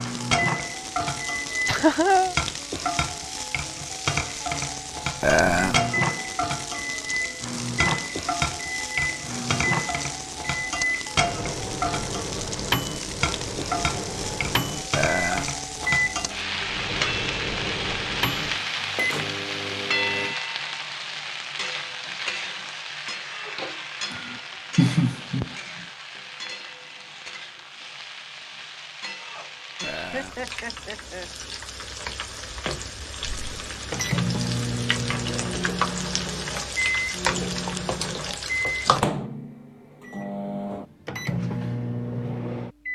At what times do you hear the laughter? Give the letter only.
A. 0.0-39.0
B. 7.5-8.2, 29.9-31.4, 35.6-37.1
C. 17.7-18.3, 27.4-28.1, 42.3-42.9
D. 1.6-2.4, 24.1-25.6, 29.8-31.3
D.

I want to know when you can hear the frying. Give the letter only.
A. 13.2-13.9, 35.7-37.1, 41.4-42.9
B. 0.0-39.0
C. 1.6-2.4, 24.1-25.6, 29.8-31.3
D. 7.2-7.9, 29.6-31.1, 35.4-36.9
B.